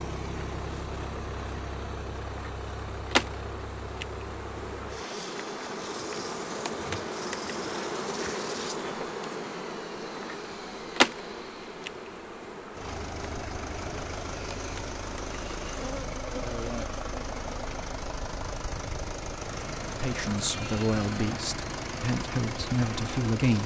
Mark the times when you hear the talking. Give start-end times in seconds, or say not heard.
19.9-23.6.